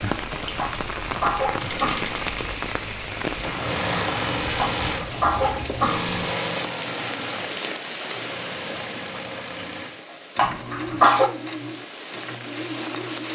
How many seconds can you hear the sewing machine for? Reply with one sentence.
You can hear the sewing machine for 13 seconds altogether.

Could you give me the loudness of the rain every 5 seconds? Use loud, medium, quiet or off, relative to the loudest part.
loud, loud, medium.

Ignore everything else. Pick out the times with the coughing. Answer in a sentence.
You can hear the coughing from 0.6 to 2.1 s, from 4.5 to 6.1 s and from 10.3 to 11.3 s.